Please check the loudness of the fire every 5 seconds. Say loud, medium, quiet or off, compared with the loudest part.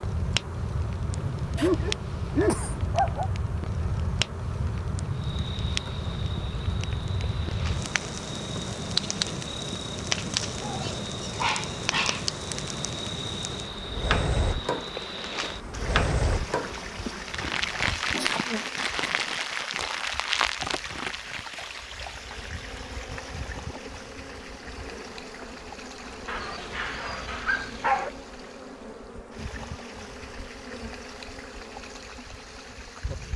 loud, loud, loud, loud, loud, off, off.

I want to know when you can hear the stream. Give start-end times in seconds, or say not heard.
5.1-33.3.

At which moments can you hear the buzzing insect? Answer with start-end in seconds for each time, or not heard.
0.0-33.3.